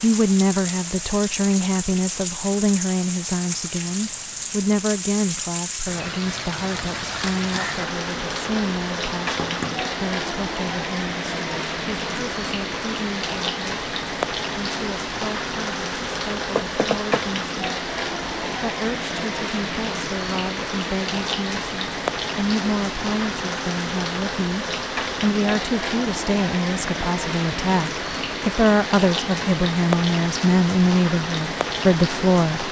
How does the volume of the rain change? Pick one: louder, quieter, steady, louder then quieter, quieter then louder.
steady.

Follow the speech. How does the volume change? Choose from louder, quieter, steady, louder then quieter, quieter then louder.
quieter then louder.